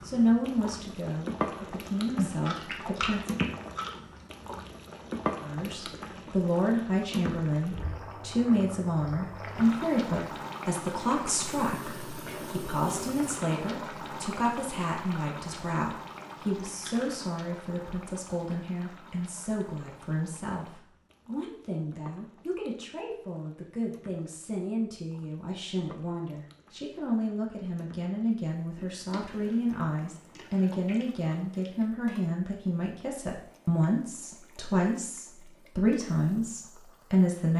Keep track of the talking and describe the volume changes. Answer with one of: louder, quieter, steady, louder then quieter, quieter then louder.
quieter then louder.